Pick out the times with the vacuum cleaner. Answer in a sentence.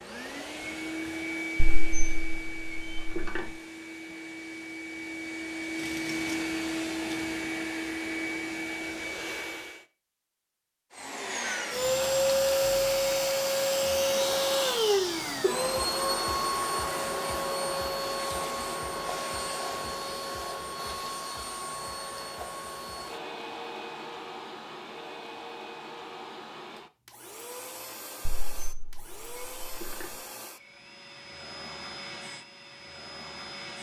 The vacuum cleaner can be heard from 0.0 to 9.8 s and from 10.9 to 33.7 s.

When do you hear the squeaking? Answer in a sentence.
The squeaking can be heard from 1.6 to 3.5 s and from 28.2 to 30.1 s.